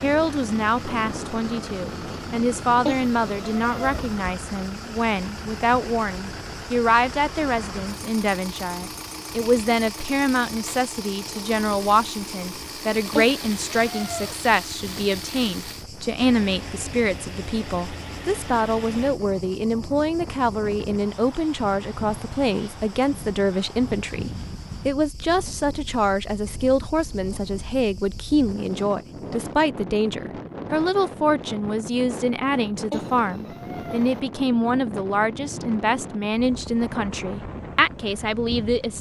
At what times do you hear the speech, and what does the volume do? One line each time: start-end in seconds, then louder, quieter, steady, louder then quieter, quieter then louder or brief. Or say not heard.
0.0-38.9 steady.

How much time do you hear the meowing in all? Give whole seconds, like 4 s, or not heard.
4 s.